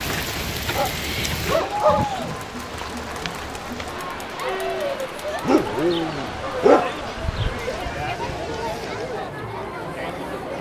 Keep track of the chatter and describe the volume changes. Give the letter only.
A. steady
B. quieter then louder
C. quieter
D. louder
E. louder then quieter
A.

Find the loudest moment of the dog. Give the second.
7 s.